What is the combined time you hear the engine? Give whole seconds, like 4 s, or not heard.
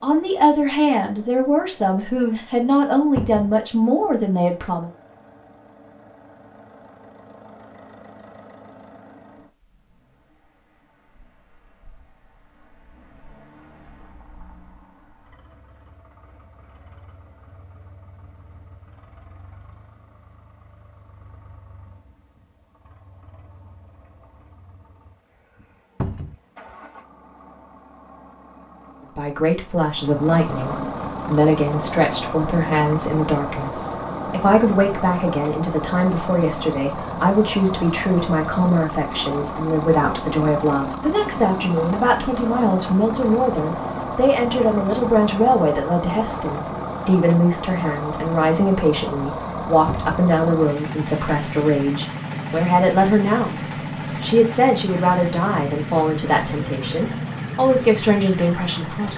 59 s.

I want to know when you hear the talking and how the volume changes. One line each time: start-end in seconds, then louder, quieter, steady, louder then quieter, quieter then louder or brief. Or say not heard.
0.0-4.9 steady
29.1-59.1 steady.